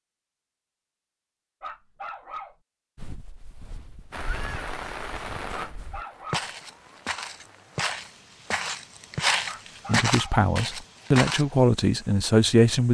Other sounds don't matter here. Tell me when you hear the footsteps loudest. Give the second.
9 s.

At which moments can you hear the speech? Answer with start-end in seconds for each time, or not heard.
9.8-12.8.